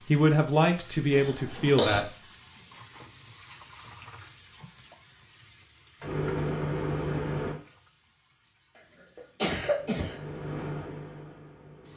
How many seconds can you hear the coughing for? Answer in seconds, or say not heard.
2 s.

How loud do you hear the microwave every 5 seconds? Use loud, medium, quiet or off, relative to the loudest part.
off, loud, medium.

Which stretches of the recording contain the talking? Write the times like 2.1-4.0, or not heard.
0.1-2.1.